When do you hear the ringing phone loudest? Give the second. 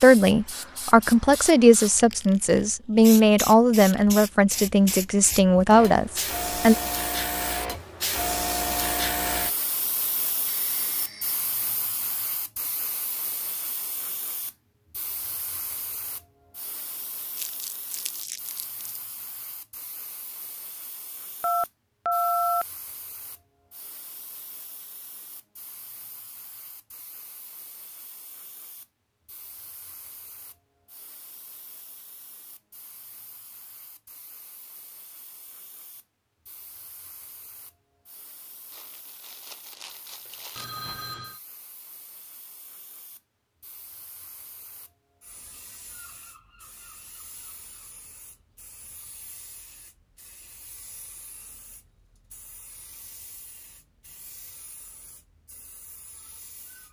22 s.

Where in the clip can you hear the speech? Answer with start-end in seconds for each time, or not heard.
0.0-6.8.